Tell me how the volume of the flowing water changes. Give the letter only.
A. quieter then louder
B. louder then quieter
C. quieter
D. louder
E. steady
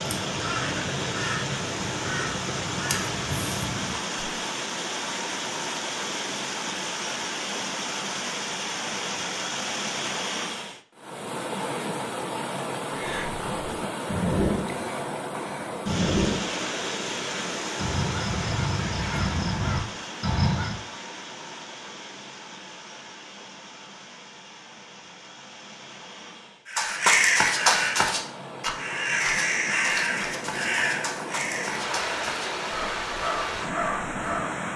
A.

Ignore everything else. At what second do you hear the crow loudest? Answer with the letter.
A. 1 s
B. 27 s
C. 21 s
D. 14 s
B.